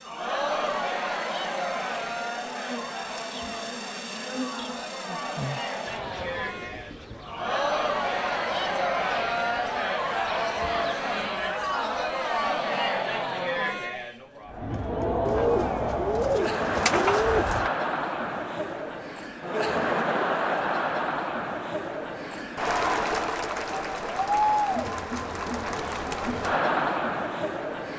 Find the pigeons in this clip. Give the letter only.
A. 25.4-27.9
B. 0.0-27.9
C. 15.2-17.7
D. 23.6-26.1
C.